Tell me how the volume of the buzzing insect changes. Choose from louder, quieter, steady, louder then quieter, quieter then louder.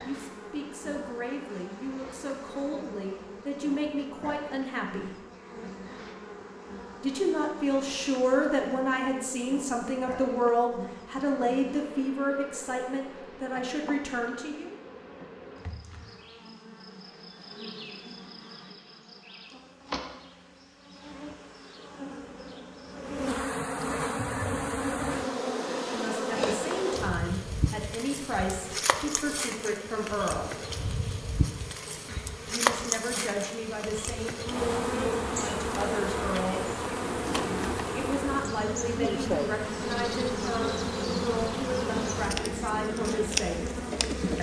louder.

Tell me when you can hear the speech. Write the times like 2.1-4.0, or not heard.
0.0-5.1, 7.0-14.8, 25.9-30.6, 32.5-36.6, 38.0-43.6.